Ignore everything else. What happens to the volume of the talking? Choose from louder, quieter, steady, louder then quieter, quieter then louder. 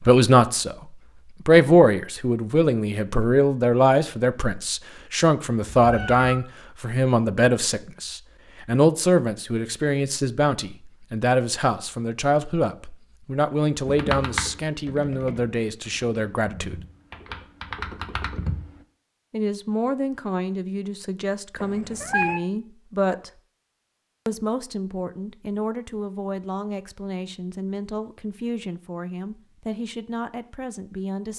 quieter.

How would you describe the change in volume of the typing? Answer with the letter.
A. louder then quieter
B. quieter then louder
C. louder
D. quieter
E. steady
B.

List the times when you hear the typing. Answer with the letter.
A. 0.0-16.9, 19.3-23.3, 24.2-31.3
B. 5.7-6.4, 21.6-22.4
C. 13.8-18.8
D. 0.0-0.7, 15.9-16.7
C.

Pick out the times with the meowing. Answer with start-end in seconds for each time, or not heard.
5.7-6.4, 21.6-22.4.